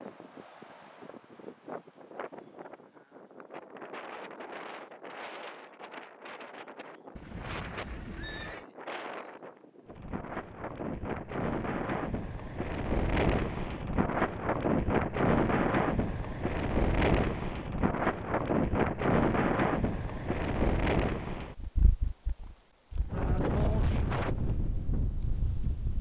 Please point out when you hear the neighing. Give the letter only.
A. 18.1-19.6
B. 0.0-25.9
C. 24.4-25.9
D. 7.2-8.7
D.